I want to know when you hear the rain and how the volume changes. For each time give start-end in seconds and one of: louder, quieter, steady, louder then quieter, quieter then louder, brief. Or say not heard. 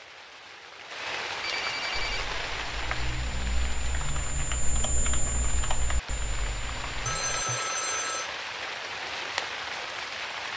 0.0-10.5 quieter then louder.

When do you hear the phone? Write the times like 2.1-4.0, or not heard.
1.4-2.2, 7.0-8.3.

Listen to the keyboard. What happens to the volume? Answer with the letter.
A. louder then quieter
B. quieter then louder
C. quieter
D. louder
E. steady
A.